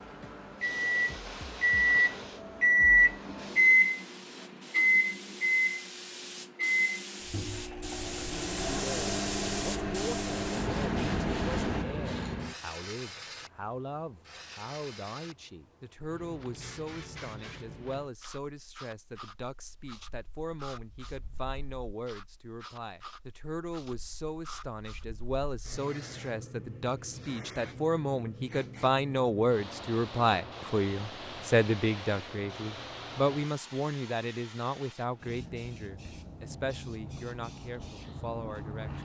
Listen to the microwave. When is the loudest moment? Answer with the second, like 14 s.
3 s.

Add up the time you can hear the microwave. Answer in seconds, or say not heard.
12 s.